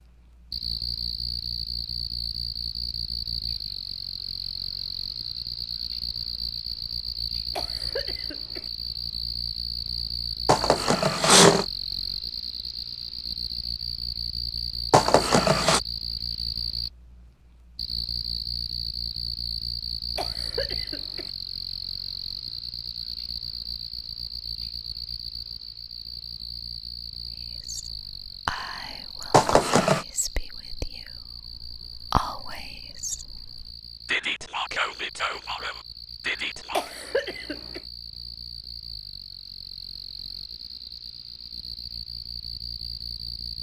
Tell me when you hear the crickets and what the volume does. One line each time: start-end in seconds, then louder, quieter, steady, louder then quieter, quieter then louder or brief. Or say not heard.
0.0-43.5 quieter.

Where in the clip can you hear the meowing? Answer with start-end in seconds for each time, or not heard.
10.4-11.7, 14.9-15.8, 29.3-30.1.